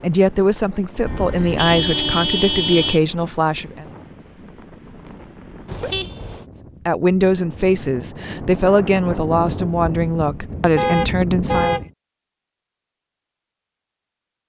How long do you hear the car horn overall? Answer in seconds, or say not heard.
4 s.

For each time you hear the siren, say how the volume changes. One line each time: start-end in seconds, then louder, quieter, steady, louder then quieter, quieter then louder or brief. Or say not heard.
not heard.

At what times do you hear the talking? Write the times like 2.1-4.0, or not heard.
0.0-3.9, 6.8-11.8.